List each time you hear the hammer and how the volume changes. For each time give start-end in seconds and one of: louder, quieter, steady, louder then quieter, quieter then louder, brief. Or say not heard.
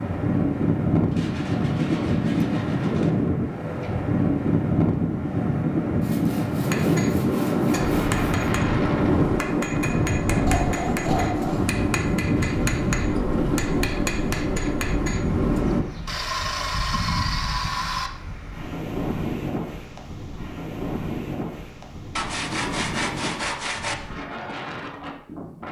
6.6-15.8 steady.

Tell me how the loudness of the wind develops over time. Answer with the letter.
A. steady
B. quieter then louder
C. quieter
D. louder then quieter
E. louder
C.